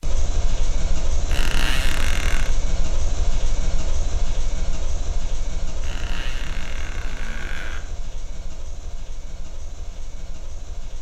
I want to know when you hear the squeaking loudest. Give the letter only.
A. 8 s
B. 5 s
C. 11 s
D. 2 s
D.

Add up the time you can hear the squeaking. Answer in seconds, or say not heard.
3 s.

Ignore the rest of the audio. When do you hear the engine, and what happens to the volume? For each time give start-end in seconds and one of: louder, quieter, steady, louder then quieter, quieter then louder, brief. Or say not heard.
0.0-10.9 quieter.